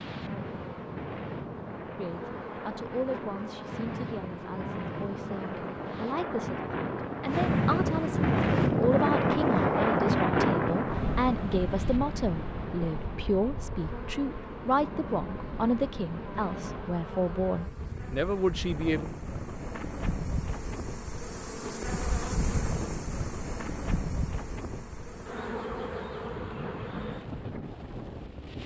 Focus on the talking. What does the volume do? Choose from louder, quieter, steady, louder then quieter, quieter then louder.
louder.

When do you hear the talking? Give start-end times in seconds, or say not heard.
1.9-19.1.